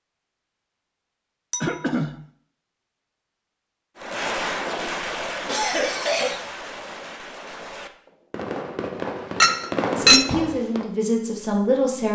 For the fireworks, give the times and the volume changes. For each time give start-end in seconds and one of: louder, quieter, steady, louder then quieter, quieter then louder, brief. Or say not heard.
4.0-10.8 quieter then louder.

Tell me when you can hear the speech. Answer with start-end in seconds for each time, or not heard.
9.9-12.0.